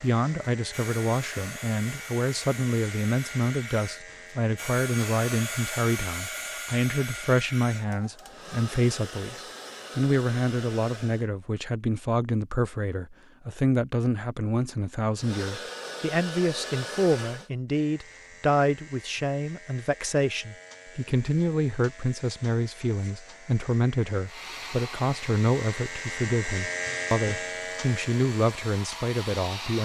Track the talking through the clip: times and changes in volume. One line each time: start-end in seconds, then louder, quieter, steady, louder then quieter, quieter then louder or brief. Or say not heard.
0.0-29.7 steady.